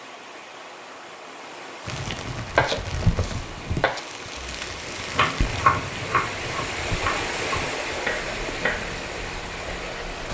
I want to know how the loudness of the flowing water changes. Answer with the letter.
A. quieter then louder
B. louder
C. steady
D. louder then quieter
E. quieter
B.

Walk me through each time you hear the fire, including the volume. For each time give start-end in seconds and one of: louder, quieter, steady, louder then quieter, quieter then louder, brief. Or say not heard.
1.9-10.2 quieter.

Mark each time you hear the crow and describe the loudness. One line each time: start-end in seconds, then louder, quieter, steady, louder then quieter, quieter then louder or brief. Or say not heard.
not heard.